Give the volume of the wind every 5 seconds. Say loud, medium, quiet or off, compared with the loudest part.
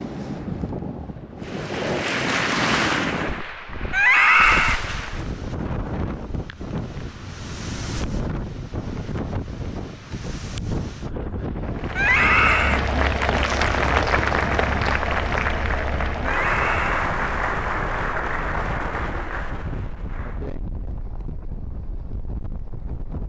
loud, loud, loud, medium, medium.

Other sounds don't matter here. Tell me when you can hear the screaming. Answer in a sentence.
You can hear the screaming from 3.9 to 4.8 s, from 11.9 to 12.8 s and from 16.2 to 17.0 s.